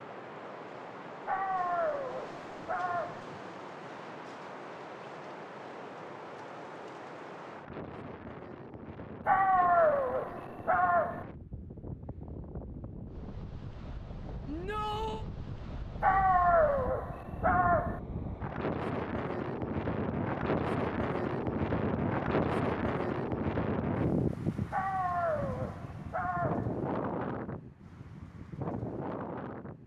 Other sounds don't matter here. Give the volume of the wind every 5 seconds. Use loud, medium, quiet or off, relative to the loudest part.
quiet, quiet, quiet, medium, loud, medium.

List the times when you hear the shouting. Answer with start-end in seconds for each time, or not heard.
14.4-15.2.